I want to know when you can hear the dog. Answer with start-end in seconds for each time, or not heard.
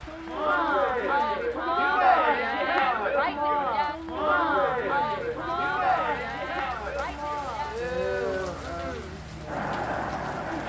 not heard.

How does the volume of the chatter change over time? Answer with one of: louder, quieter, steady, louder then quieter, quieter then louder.
quieter.